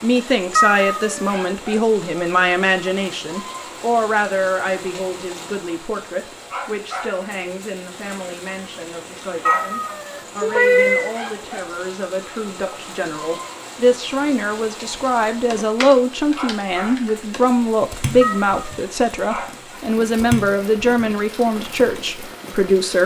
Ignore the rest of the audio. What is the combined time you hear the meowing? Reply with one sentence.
The meowing can be heard for 3 seconds in total.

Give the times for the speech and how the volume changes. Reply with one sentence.
You can hear the speech from 0.0 to 23.0 s, getting quieter then louder.